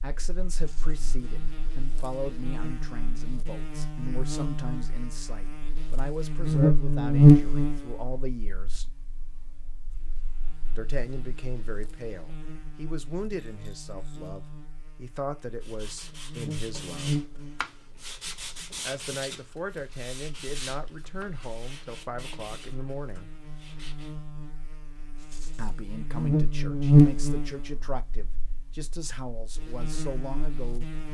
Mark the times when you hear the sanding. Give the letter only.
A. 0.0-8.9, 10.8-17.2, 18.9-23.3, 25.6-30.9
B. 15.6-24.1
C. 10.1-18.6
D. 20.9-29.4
B.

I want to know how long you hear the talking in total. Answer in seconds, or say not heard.
25 s.